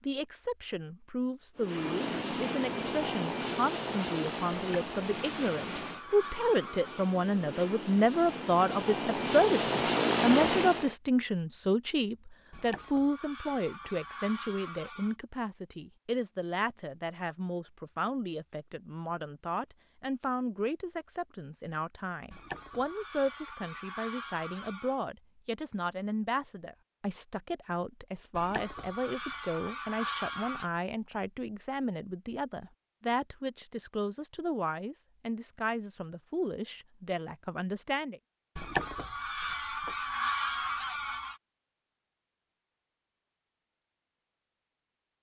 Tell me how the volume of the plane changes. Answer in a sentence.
The loudness of the plane goes down, then up.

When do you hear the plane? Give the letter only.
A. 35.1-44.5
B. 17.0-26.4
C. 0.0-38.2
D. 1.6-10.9
D.